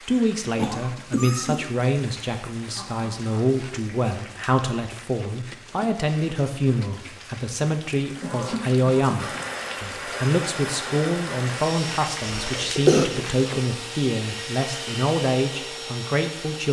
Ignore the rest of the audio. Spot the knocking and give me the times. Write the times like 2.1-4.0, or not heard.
not heard.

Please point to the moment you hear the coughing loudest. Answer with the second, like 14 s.
13 s.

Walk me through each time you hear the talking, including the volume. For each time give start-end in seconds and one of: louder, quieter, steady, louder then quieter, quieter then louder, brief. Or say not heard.
0.1-16.6 steady.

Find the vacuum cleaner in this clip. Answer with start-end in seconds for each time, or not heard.
9.2-16.6.